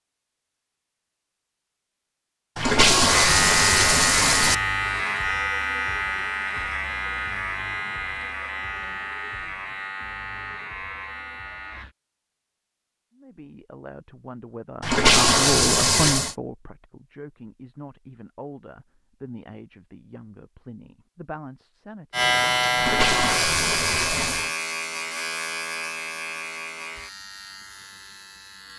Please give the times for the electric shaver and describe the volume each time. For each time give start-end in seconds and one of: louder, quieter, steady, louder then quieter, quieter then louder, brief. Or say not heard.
3.0-11.9 quieter
22.1-28.7 quieter.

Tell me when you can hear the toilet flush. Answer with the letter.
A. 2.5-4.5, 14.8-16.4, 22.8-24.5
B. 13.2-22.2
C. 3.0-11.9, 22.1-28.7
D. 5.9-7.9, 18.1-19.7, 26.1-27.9
A.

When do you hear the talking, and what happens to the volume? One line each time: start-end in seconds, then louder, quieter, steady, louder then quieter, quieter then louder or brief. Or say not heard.
13.2-22.2 louder then quieter.